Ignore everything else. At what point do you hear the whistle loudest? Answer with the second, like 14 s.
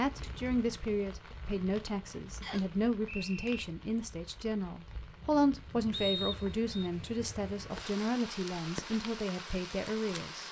6 s.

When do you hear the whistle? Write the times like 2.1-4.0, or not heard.
2.4-3.6, 5.9-6.9.